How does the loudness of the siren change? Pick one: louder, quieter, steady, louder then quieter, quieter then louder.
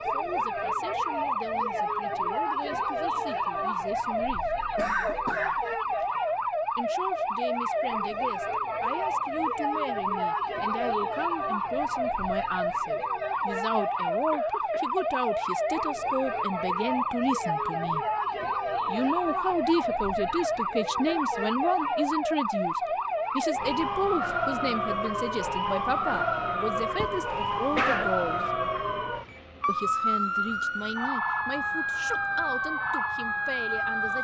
steady.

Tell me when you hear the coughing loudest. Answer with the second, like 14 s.
28 s.